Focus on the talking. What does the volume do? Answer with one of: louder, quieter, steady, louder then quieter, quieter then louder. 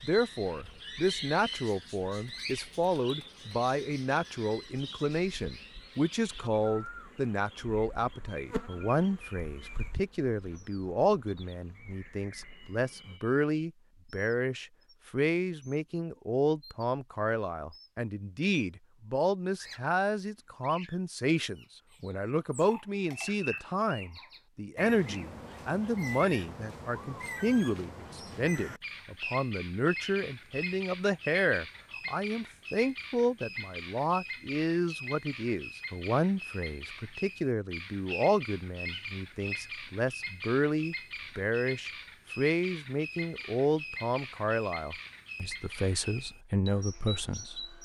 steady.